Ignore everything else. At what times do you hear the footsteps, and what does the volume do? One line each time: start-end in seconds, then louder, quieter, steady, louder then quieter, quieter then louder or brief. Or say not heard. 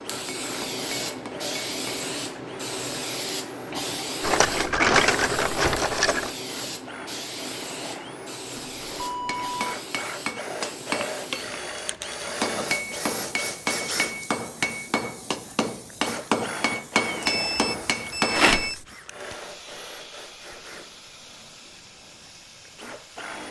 not heard.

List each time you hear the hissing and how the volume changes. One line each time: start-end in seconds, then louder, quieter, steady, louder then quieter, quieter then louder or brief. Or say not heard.
0.0-23.4 quieter.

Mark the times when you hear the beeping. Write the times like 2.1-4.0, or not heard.
8.6-9.8, 17.2-18.9.